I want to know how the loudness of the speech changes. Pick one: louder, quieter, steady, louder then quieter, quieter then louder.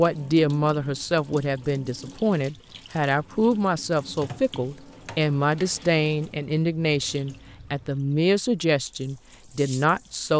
steady.